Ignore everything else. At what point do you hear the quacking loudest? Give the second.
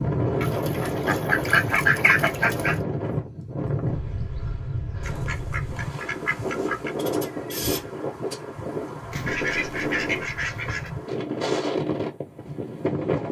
2 s.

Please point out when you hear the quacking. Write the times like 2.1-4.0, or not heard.
0.4-2.8, 5.0-6.9, 9.1-10.9.